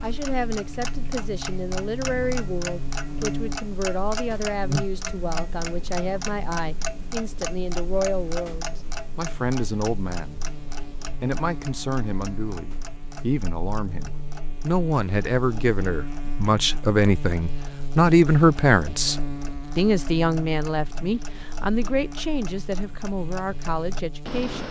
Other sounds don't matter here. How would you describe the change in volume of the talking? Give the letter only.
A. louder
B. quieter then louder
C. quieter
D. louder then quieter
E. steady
D.